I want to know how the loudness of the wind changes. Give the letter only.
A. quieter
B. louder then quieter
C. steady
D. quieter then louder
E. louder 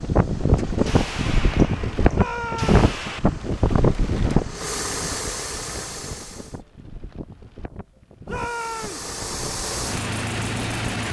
A.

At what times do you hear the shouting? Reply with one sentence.
The shouting can be heard from 2.1 to 2.8 s and from 8.2 to 9.1 s.